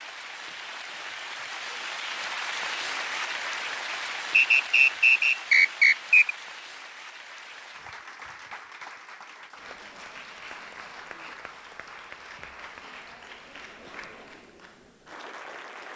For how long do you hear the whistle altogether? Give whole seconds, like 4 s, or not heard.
2 s.